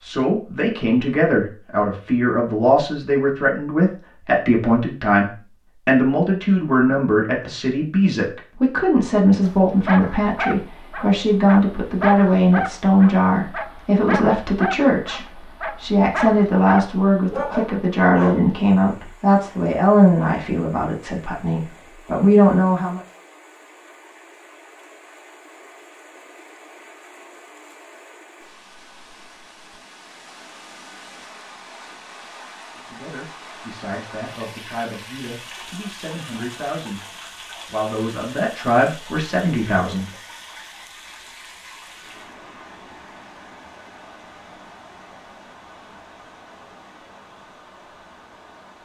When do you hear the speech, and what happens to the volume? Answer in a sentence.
You can hear the speech from 0.0 to 23.0 s, at a steady volume; and from 32.9 to 40.1 s, getting louder.